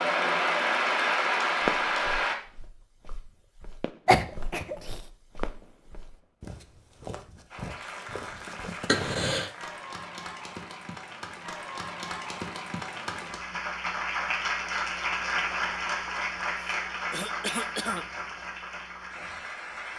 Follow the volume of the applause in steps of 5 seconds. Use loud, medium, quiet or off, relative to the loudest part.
loud, quiet, medium, medium.